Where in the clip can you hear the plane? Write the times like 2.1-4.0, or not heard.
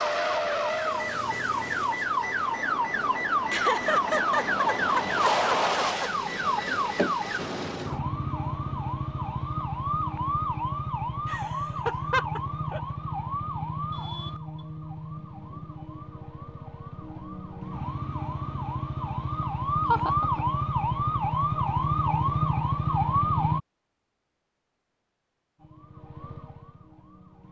not heard.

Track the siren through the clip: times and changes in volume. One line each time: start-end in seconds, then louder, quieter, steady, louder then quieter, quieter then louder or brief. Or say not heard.
0.0-23.6 quieter then louder
25.6-27.4 brief.